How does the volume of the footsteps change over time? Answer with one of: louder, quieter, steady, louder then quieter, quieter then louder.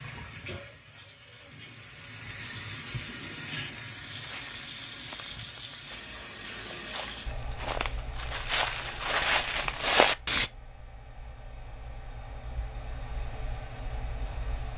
louder.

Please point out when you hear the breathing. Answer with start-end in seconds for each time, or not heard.
not heard.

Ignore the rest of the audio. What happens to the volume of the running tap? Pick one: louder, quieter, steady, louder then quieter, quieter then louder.
louder.